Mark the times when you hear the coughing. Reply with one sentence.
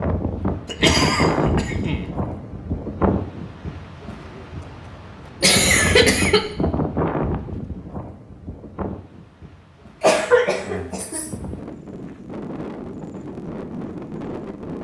You can hear the coughing from 0.7 to 2.0 s, from 5.4 to 6.5 s and from 10.0 to 11.3 s.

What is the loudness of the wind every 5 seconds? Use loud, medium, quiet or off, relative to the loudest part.
loud, loud, medium.